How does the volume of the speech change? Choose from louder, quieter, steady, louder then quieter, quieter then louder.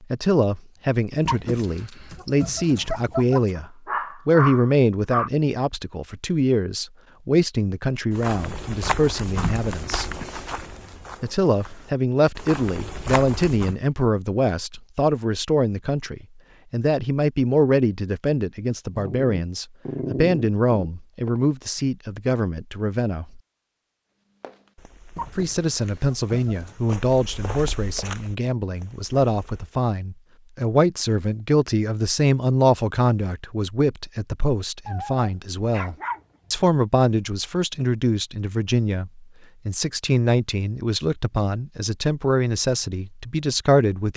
steady.